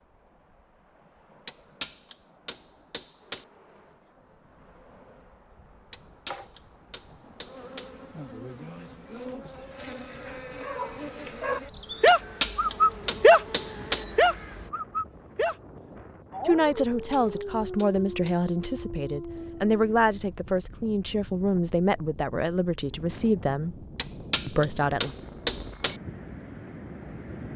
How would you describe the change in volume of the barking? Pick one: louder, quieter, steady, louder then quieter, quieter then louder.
quieter.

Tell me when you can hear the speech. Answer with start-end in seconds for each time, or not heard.
16.4-23.9, 24.4-25.1.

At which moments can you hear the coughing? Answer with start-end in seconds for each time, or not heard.
not heard.